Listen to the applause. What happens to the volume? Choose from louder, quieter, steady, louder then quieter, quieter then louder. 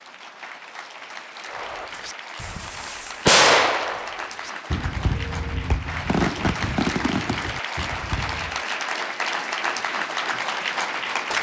louder.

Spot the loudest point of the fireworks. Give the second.
3 s.